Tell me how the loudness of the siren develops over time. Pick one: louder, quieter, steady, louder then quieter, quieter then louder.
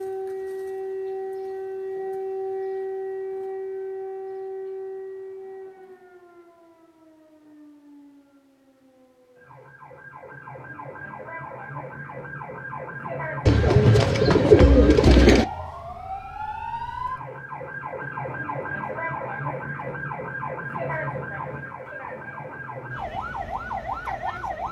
quieter then louder.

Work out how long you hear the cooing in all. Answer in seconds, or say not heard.
2 s.